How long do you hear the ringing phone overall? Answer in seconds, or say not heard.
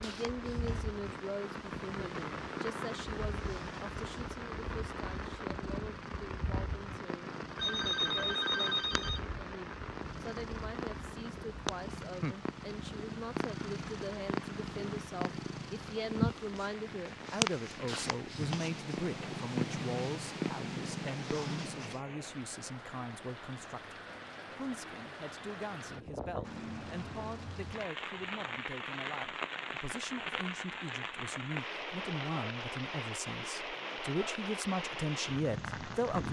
2 s.